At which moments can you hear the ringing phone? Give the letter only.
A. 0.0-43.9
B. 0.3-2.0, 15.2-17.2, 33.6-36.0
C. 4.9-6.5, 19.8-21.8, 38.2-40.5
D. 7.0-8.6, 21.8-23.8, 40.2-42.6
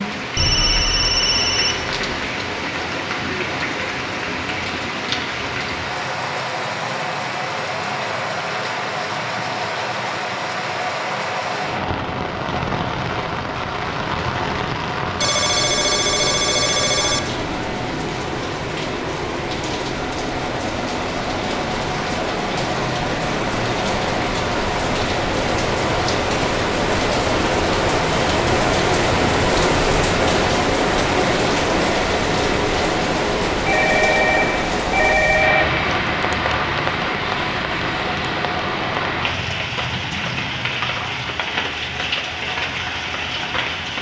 B.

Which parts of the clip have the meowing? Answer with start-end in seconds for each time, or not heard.
not heard.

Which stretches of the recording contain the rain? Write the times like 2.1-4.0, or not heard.
0.0-43.9.